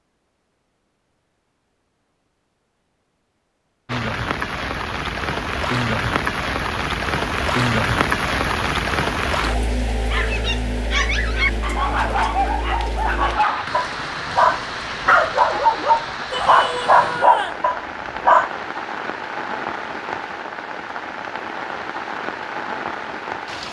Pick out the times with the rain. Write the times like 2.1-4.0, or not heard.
3.9-23.6.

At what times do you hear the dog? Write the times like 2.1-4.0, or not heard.
10.1-18.5.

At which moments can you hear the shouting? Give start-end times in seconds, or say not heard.
16.3-17.6.